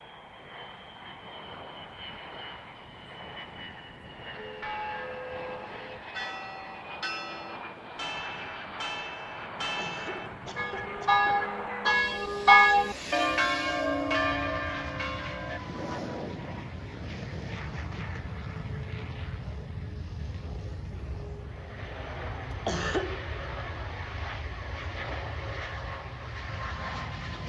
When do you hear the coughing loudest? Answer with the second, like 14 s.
23 s.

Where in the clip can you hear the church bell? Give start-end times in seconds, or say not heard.
4.3-15.6.